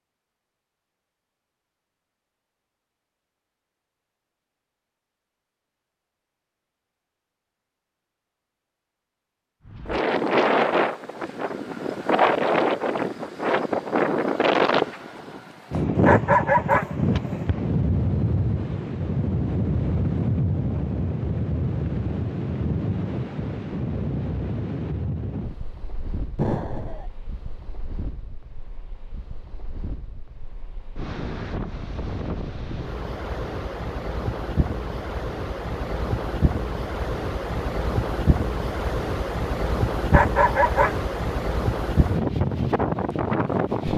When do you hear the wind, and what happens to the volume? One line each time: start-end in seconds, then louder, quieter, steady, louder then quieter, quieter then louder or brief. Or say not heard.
9.7-43.9 quieter then louder.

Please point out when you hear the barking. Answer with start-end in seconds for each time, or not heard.
15.9-17.4, 40.0-41.0.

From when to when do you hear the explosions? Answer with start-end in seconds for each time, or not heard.
26.4-27.1.